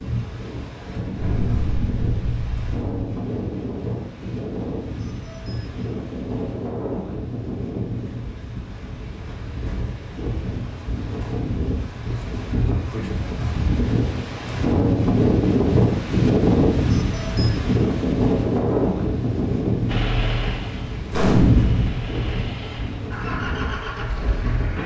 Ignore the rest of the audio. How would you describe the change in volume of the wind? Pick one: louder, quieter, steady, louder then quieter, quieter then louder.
louder then quieter.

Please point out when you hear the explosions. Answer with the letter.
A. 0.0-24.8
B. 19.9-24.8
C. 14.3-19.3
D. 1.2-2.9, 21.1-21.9
D.